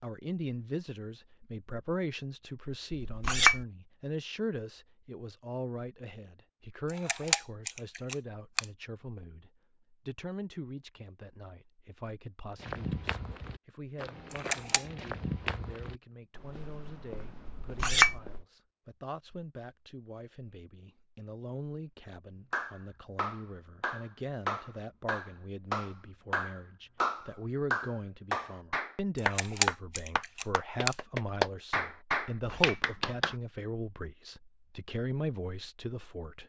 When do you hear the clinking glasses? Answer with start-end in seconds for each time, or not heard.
2.9-3.6, 17.4-18.2, 32.4-32.9.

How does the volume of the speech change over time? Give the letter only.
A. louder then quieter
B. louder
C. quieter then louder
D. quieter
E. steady
C.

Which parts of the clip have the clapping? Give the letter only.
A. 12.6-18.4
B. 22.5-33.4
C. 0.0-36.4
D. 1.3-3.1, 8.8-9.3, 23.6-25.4
B.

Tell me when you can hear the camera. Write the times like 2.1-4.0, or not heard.
6.8-8.7, 14.3-14.8, 29.1-30.9.